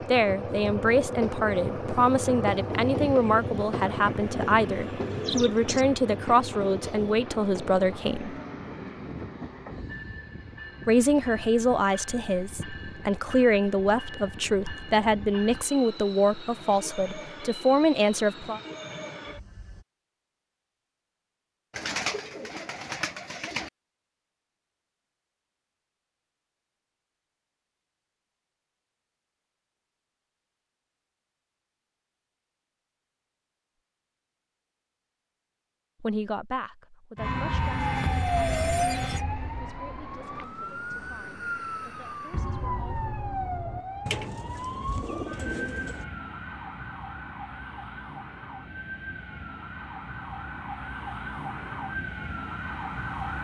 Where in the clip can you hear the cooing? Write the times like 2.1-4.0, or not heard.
5.0-5.8, 21.7-23.7, 44.0-46.0.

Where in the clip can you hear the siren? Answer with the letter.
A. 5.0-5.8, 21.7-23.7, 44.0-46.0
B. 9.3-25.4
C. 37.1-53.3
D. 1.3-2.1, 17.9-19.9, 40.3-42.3
C.